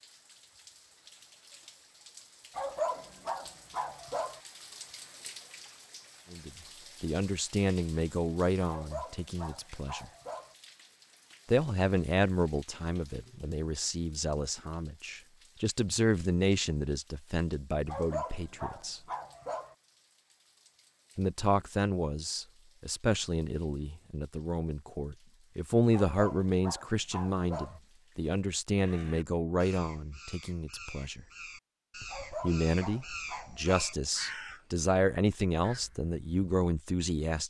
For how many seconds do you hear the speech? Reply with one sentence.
The speech can be heard for 27 seconds in total.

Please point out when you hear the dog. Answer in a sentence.
The dog can be heard from 2.5 to 4.4 s, from 8.7 to 10.6 s, from 17.9 to 19.8 s, from 25.9 to 27.8 s and from 32.1 to 34.0 s.